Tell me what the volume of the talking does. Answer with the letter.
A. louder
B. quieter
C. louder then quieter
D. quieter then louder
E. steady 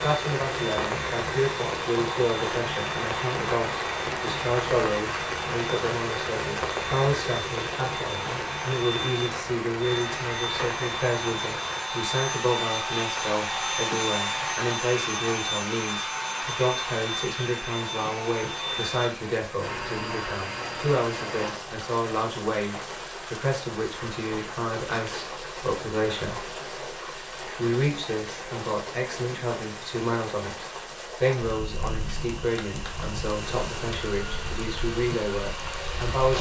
E.